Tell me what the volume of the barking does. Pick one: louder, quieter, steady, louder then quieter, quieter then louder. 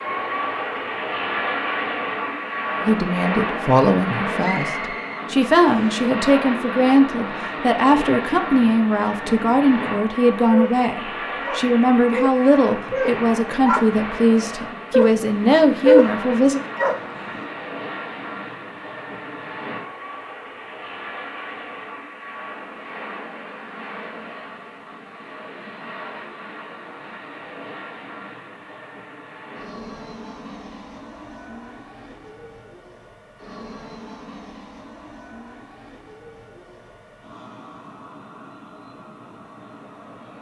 louder.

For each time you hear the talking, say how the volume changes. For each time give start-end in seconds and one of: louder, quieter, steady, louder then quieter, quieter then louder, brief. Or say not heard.
2.8-16.6 steady.